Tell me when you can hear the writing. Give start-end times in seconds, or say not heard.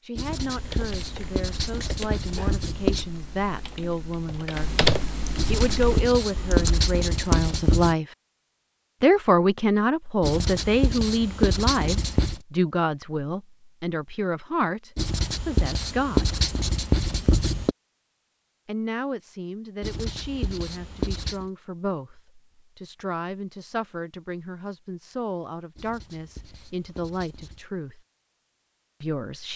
0.1-3.0, 5.3-8.0, 10.2-12.4, 14.9-17.8, 19.8-21.5, 25.8-27.6.